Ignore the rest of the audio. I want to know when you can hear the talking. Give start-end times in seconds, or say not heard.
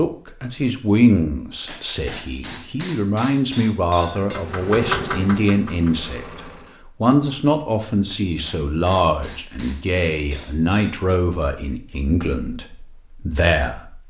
0.0-14.0.